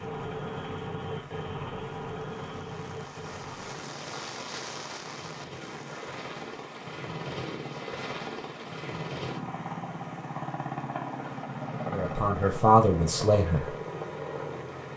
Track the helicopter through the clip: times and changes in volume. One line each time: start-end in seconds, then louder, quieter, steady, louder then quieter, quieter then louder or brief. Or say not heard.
0.0-14.9 quieter then louder.